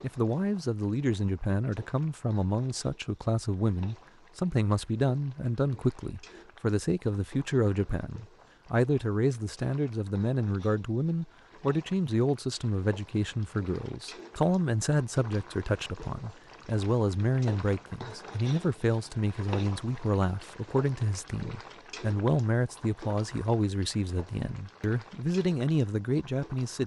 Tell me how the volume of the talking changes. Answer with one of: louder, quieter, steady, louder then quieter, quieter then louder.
steady.